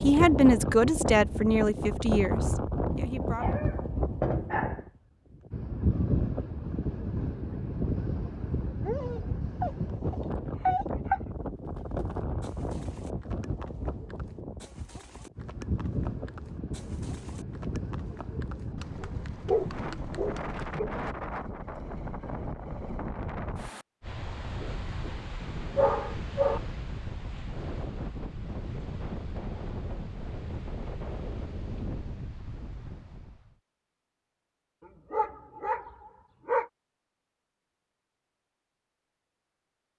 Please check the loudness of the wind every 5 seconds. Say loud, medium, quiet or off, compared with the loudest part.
loud, loud, medium, medium, medium, medium, medium, off.